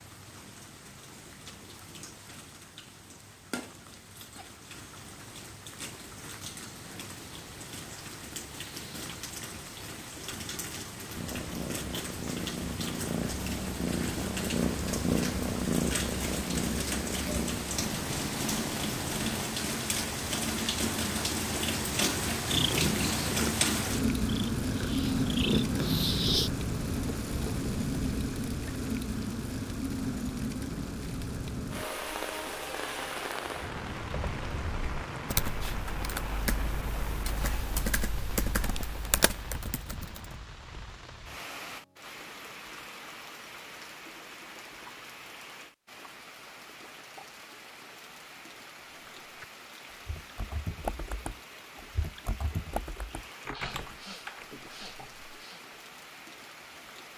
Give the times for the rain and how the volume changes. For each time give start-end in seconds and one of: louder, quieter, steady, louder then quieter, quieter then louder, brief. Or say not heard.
0.0-57.1 louder then quieter.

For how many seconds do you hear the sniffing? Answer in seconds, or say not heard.
2 s.